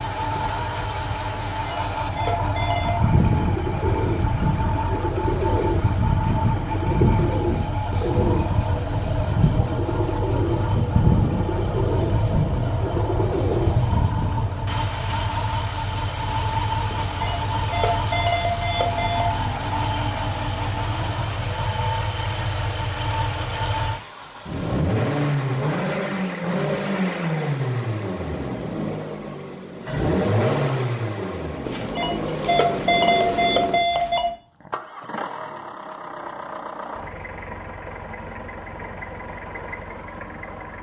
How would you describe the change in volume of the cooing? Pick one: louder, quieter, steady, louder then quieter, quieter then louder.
steady.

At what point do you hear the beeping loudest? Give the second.
33 s.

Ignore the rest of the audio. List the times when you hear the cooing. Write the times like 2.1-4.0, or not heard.
2.8-14.4.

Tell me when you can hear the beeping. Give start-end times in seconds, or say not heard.
1.5-3.1, 16.9-19.2, 31.6-34.2.